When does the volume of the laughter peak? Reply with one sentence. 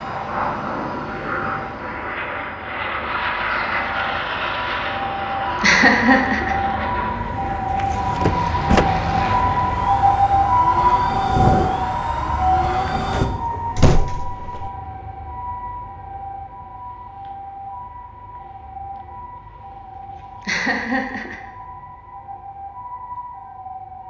The loudest moment of the laughter is at 6 seconds.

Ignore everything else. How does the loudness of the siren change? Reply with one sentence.
The loudness of the siren goes up, then down.